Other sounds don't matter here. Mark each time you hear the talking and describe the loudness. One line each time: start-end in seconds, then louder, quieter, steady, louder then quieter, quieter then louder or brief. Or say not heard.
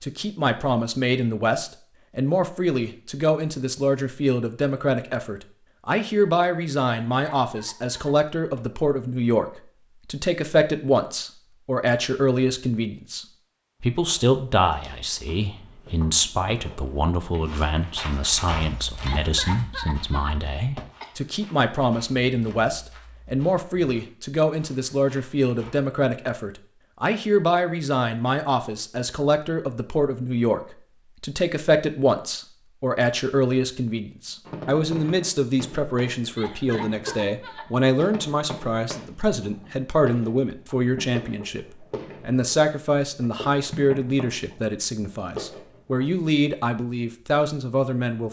0.0-48.2 steady.